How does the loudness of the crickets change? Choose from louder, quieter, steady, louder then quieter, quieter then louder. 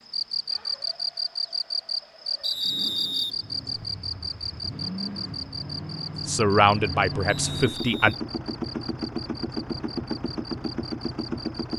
quieter.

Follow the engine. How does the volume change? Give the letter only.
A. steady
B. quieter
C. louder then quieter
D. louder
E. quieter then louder
D.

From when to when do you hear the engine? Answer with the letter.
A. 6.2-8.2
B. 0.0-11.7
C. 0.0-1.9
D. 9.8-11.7
B.